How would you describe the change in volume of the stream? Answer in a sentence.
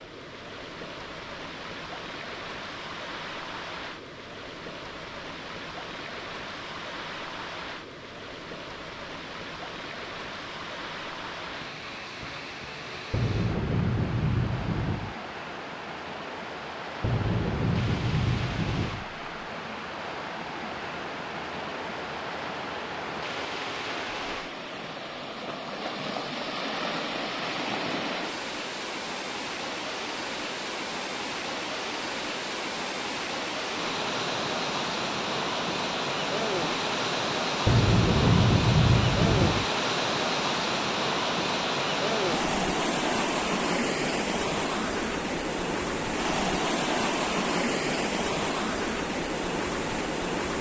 The loudness of the stream goes up.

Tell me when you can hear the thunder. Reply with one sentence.
The thunder can be heard from 13.1 to 15.2 s, from 17.0 to 19.1 s and from 37.6 to 39.7 s.